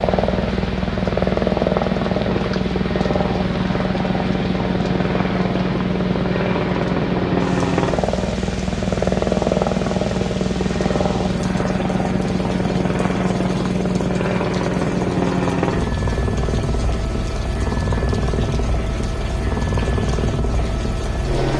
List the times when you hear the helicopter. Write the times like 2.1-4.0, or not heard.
0.0-21.5.